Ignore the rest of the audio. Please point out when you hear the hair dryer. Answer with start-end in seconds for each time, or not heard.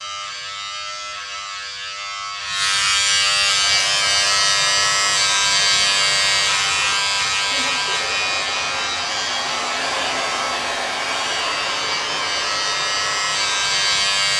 3.4-14.3.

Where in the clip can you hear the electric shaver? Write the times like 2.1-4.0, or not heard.
0.0-14.3.